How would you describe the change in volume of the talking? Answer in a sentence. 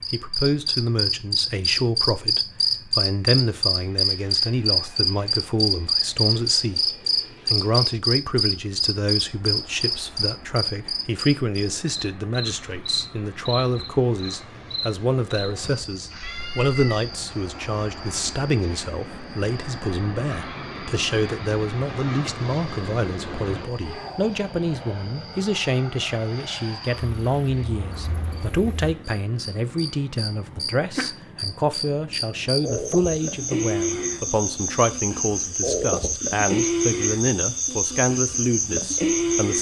The loudness of the talking stays about the same.